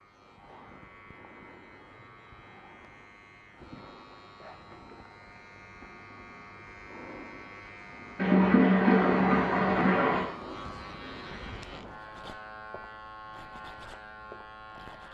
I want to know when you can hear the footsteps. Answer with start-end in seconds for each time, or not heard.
not heard.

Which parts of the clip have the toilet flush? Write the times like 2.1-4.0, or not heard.
8.2-10.3.